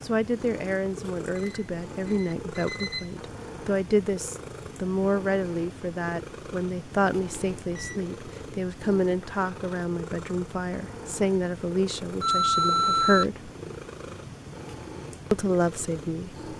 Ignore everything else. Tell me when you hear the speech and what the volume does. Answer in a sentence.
The speech can be heard from 0.0 to 13.5 s, at a steady volume; and briefly from 15.3 to 16.5 s.